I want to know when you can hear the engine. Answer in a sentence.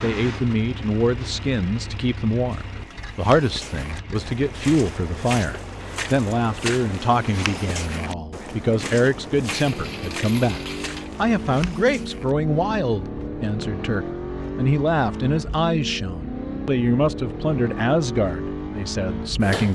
The engine can be heard from 0.0 to 19.6 s.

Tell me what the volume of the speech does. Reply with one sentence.
The volume of the speech stays about the same.